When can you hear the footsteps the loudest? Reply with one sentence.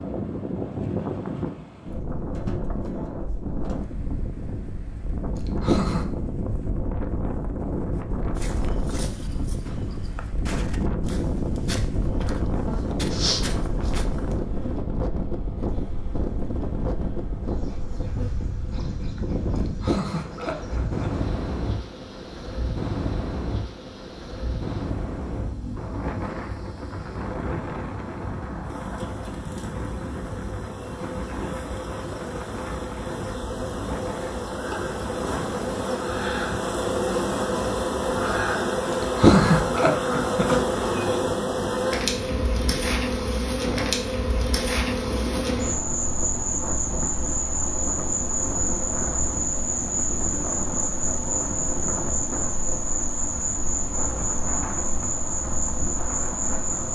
The volume of the footsteps peaks at 13 seconds.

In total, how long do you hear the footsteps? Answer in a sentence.
You can hear the footsteps for 6 seconds altogether.